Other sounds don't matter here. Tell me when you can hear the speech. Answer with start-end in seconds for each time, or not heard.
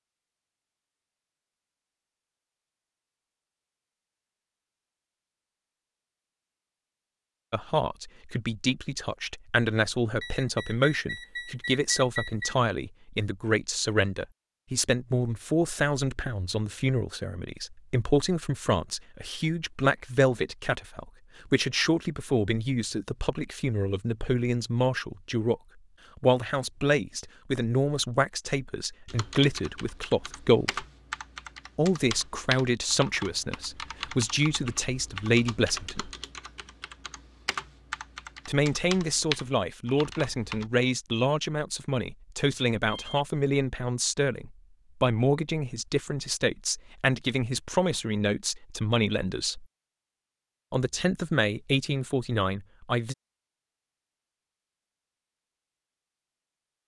7.5-30.9, 31.8-36.1, 38.5-49.6, 50.7-53.1.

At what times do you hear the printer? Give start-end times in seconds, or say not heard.
not heard.